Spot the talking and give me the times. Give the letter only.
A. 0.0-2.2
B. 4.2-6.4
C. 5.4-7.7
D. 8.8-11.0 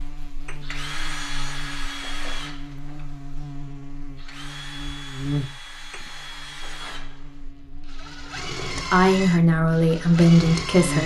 D.